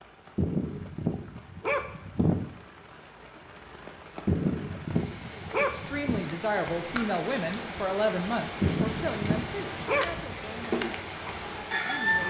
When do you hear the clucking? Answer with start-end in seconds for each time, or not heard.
10.5-12.2.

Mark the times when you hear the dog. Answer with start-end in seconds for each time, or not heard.
0.3-2.5, 4.2-6.2, 8.6-10.3.